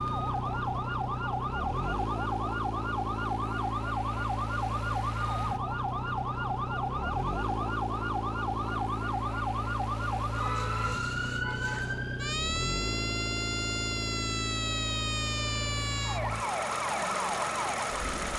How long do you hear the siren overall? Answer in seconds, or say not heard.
18 s.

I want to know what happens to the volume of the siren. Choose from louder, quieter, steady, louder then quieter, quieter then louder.
steady.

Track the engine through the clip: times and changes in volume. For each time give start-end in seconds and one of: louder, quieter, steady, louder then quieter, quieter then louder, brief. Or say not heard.
0.0-18.3 steady.